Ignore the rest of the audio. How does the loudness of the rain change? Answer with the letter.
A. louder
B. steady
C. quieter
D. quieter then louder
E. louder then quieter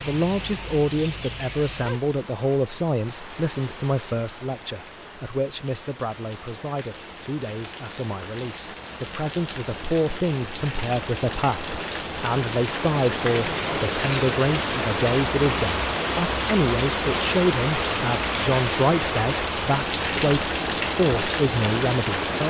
A.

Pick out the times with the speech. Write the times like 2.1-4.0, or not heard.
0.1-22.4.